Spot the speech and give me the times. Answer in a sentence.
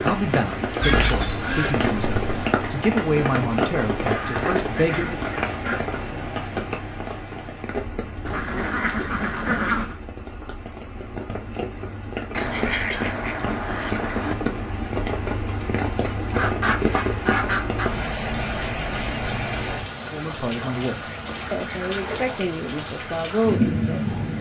The speech can be heard from 0.0 to 5.2 s and from 20.1 to 24.1 s.